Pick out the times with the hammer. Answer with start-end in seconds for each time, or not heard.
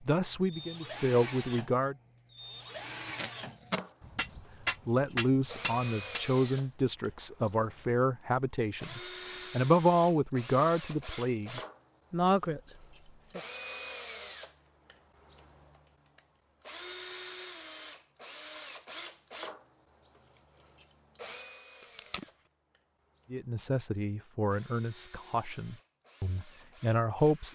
4.0-6.2.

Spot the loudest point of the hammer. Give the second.
5 s.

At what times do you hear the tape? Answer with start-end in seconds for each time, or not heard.
3.0-3.9, 21.8-22.2.